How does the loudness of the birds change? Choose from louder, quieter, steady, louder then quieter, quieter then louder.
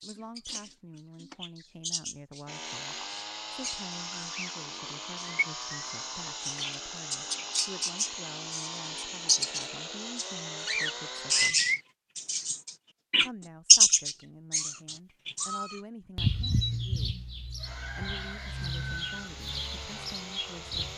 louder then quieter.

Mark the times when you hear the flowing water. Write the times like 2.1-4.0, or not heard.
not heard.